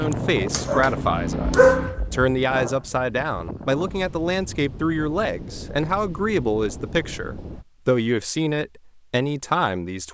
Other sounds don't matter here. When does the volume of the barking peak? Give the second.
2 s.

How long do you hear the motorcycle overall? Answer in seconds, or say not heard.
2 s.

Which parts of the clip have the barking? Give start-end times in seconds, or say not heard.
0.1-2.8.